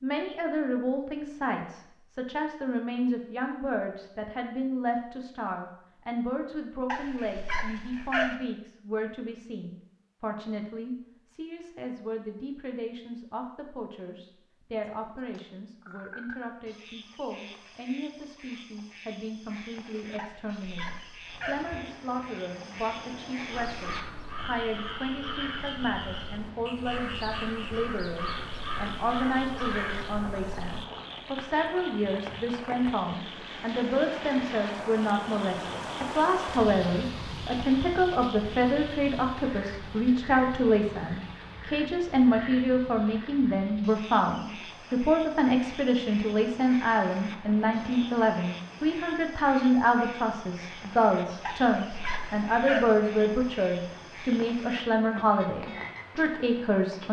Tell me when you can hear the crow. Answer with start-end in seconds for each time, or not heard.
23.5-30.9.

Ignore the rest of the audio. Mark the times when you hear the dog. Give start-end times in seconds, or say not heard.
6.8-8.3, 20.1-21.6, 51.5-52.9.